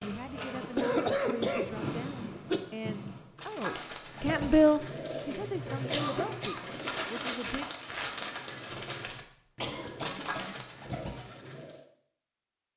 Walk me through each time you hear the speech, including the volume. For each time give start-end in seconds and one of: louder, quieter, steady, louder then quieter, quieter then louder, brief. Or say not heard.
0.0-7.7 louder then quieter.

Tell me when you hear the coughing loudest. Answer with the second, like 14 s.
1 s.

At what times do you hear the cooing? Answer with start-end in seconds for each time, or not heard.
3.4-11.8.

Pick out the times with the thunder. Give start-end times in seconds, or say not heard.
0.0-3.3.